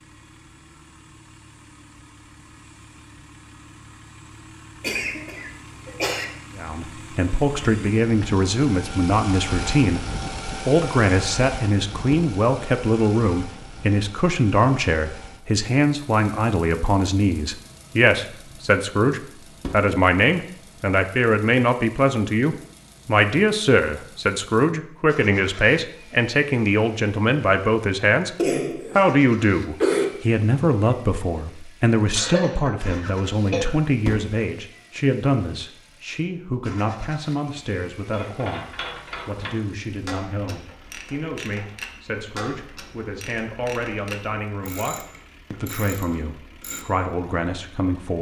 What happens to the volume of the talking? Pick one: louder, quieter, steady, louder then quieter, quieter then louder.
quieter.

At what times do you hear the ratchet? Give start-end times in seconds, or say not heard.
38.1-46.9.